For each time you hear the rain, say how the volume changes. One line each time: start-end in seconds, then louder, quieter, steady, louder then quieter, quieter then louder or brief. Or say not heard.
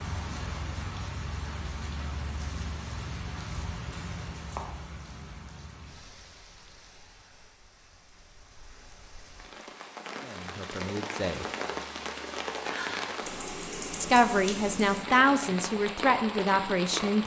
0.0-17.2 quieter then louder.